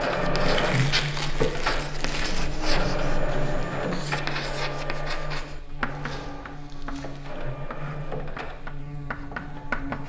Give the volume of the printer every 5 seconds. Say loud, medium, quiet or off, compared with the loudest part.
loud, medium.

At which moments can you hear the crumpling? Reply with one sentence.
The crumpling can be heard from 0.4 to 2.5 s and from 5.8 to 7.3 s.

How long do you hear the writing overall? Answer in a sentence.
The writing can be heard for 10 seconds in total.